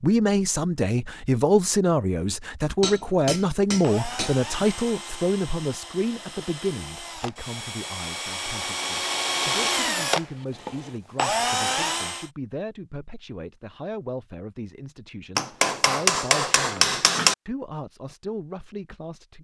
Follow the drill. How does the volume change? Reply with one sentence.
The loudness of the drill goes up.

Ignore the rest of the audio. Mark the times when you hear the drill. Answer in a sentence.
The drill can be heard from 3.8 to 12.3 s.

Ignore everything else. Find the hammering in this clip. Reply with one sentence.
The hammering can be heard from 2.8 to 4.4 s and from 15.3 to 17.4 s.